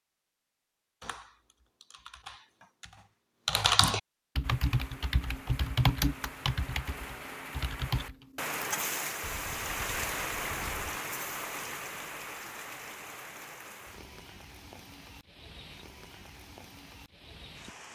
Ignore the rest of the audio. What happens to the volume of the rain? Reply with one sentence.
The loudness of the rain goes up, then down.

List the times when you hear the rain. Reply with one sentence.
You can hear the rain from 4.4 to 17.8 s.